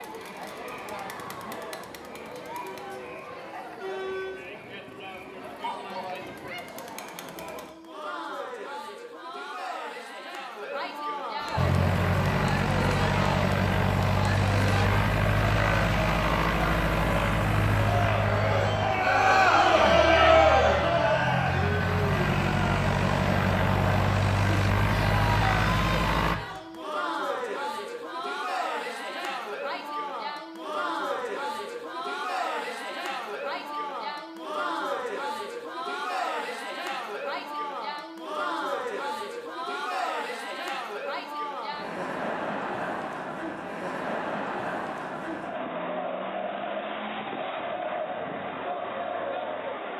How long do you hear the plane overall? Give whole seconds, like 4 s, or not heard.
15 s.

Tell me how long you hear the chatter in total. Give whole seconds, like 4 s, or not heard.
50 s.